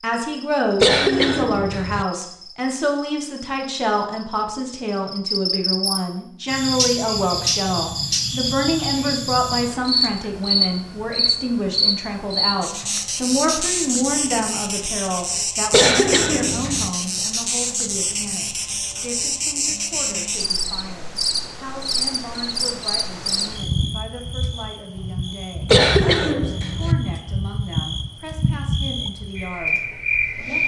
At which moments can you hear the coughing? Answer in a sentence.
You can hear the coughing from 0.8 to 2.0 s, from 15.7 to 16.9 s and from 25.6 to 26.9 s.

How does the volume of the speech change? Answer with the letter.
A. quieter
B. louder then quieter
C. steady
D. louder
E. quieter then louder
A.